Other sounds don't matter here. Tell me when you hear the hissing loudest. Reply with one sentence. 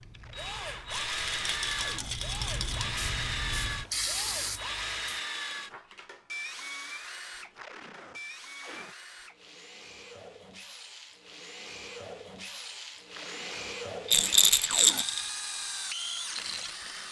The loudest moment of the hissing is at 4 seconds.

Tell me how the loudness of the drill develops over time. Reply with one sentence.
The volume of the drill goes down, then up.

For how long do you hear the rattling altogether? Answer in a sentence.
You can hear the rattling for 3 seconds altogether.